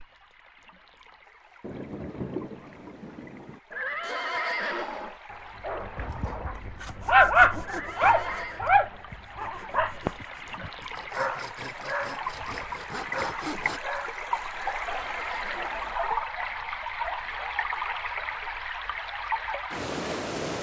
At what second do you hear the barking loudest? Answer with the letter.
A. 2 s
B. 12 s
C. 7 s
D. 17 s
C.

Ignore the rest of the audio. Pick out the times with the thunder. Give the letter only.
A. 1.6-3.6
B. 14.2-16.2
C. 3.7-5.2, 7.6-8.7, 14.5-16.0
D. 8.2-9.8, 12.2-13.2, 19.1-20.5
A.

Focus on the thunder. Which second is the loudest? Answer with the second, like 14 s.
2 s.